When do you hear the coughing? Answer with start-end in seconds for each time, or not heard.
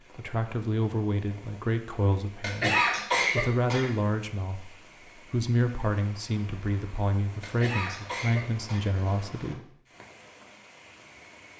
2.4-3.9, 7.4-8.8.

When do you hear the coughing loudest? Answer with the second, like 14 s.
3 s.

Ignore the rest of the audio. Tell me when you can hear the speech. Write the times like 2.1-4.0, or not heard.
0.1-9.7.